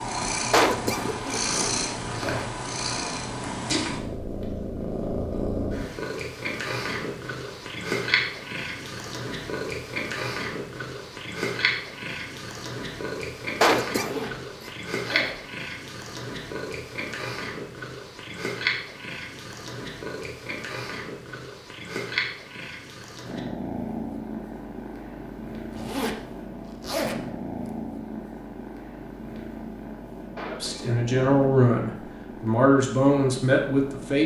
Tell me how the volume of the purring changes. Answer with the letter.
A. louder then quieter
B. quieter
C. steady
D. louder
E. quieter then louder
B.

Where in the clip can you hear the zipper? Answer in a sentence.
You can hear the zipper from 1.1 to 2.5 s, from 13.9 to 15.4 s and from 25.7 to 27.7 s.